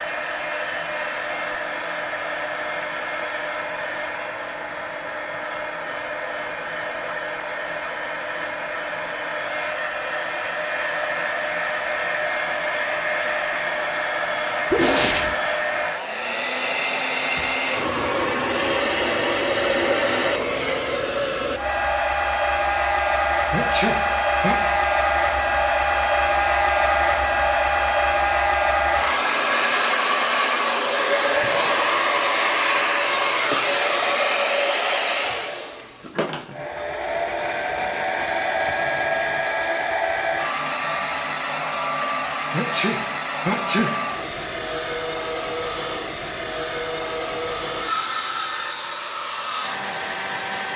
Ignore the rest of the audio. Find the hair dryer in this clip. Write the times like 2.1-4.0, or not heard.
0.0-50.7.